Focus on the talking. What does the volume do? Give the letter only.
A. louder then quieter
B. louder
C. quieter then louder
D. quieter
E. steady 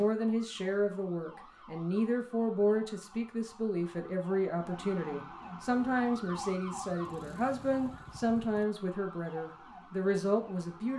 E.